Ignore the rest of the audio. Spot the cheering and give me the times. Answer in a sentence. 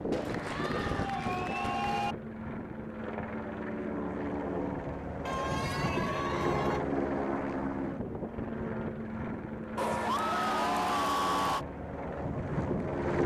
The cheering can be heard from 0.1 to 2.1 s, from 5.2 to 6.8 s and from 9.8 to 11.7 s.